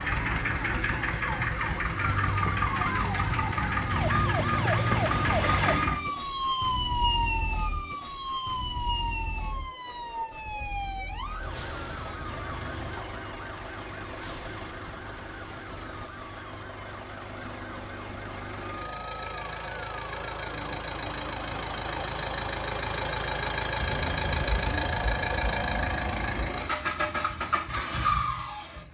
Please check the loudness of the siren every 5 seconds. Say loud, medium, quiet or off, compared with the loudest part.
loud, loud, medium, quiet, quiet, off.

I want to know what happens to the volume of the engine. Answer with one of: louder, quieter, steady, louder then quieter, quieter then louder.
quieter then louder.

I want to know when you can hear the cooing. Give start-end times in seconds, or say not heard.
23.8-26.6.